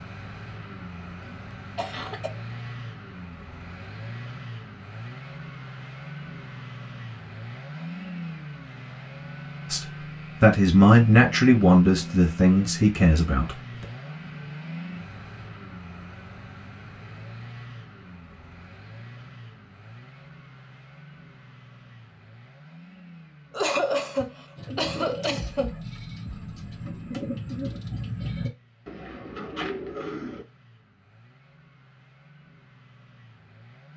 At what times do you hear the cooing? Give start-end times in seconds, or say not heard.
24.6-30.4.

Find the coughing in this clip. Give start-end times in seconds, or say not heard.
1.2-2.3, 23.5-25.8.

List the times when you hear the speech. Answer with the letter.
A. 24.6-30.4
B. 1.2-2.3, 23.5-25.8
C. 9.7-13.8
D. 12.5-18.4
C.